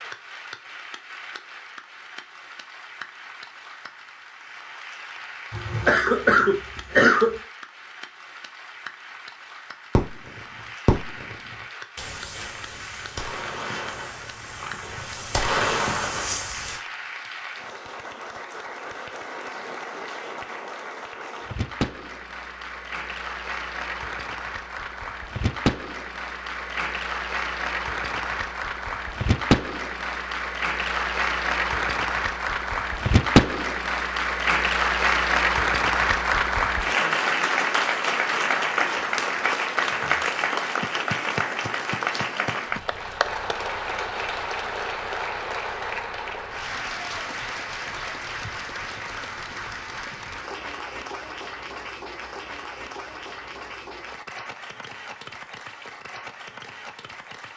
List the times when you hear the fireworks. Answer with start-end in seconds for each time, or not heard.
9.9-16.8.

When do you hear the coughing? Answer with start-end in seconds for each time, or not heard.
5.5-7.3.